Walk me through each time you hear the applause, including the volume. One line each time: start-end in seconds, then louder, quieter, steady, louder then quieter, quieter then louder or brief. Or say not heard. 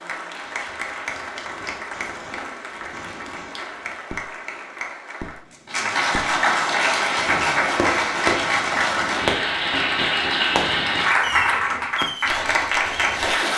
0.0-13.5 louder.